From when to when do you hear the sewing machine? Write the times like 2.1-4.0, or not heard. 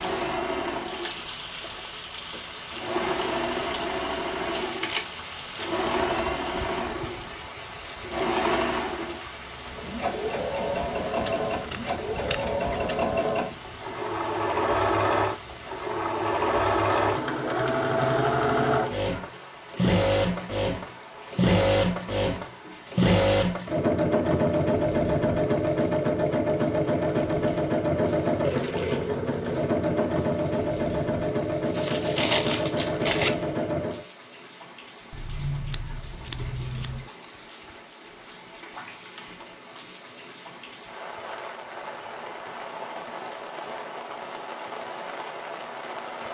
0.0-34.0.